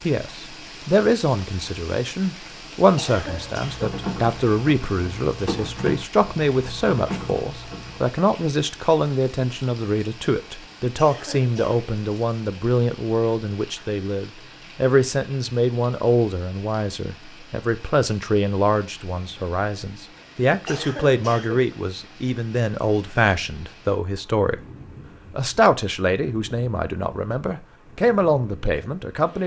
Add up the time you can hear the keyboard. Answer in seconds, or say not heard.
5 s.